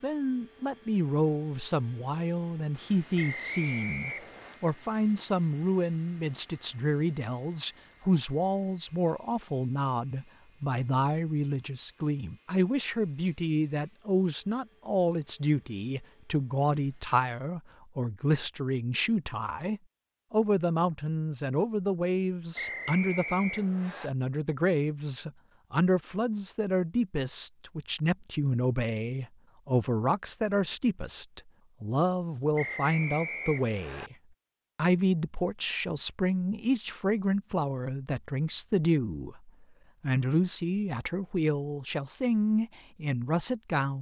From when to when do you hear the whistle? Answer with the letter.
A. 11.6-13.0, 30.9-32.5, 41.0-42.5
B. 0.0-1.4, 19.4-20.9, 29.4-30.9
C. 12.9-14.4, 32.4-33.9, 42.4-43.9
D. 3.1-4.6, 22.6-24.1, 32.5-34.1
D.